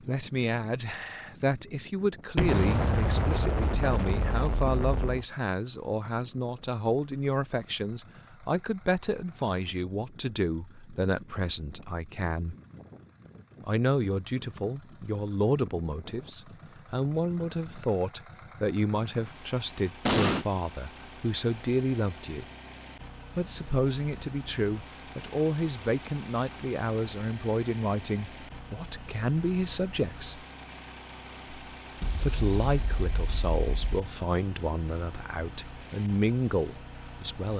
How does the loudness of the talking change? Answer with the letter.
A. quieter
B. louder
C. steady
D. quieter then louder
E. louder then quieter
C.